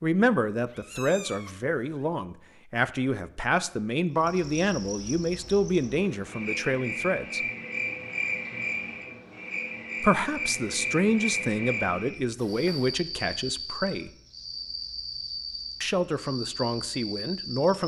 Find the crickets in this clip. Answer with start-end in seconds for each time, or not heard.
4.1-17.8.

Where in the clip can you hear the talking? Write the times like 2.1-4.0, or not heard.
0.0-7.4, 10.0-14.1, 15.8-17.8.